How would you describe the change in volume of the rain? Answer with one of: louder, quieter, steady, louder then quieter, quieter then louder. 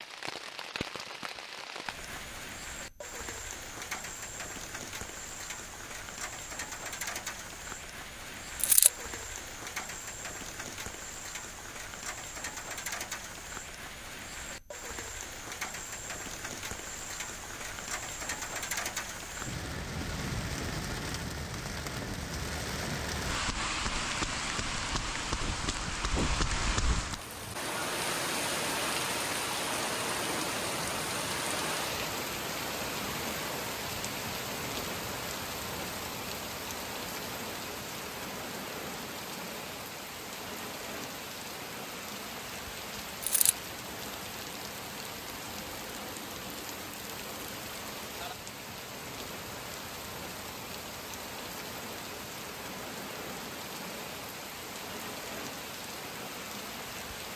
louder then quieter.